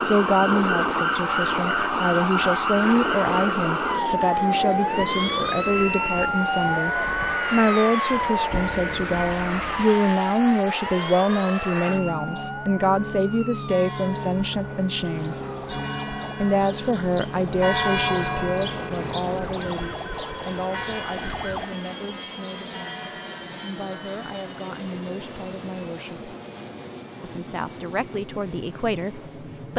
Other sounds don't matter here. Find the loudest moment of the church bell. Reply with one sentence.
The volume of the church bell peaks at 18 seconds.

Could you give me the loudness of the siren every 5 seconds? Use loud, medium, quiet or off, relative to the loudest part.
loud, loud, medium, quiet, quiet, off.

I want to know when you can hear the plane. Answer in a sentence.
You can hear the plane from 0.0 to 29.7 s.